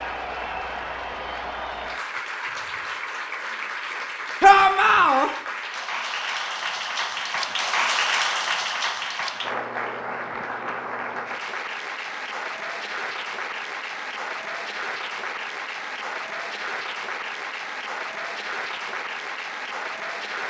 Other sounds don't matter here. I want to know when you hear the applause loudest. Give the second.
8 s.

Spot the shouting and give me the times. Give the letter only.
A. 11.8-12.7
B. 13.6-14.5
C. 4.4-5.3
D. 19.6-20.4
C.